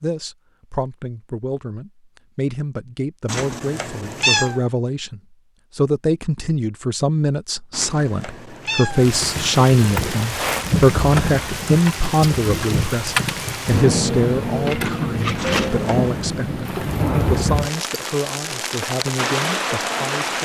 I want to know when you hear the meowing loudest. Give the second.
4 s.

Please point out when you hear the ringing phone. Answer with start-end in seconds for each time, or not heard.
not heard.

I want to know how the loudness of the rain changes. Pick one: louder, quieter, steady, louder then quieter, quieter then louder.
steady.